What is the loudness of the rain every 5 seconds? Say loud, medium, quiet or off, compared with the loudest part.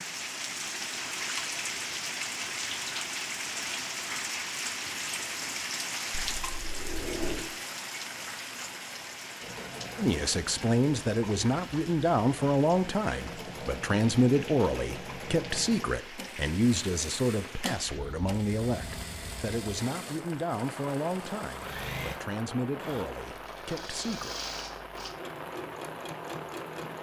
loud, loud, medium, medium, medium, medium.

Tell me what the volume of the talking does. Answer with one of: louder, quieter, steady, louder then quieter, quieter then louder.
quieter.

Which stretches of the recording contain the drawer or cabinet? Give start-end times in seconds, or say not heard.
6.1-7.5.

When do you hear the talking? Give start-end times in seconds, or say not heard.
9.9-24.4.